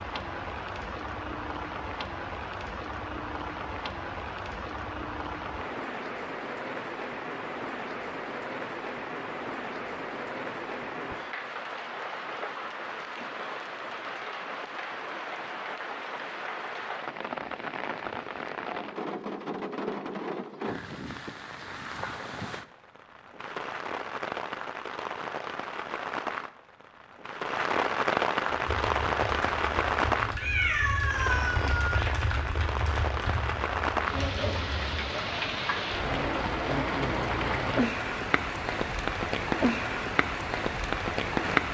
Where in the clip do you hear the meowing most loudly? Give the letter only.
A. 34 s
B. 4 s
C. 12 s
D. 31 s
D.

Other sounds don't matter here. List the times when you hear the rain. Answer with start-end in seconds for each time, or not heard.
0.0-41.6.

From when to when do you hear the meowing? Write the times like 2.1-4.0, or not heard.
30.4-32.0.